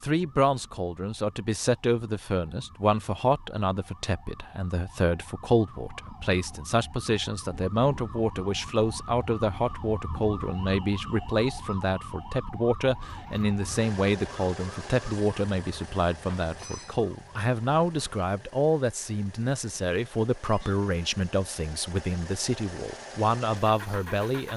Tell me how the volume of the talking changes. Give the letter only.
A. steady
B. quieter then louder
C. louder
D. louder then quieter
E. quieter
A.